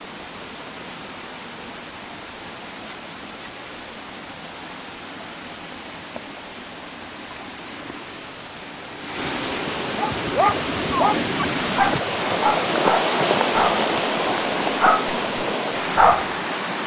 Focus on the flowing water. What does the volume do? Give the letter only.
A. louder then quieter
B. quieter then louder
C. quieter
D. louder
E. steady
D.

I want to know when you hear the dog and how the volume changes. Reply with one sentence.
You can hear the dog from 9.9 to 16.3 s, getting quieter then louder.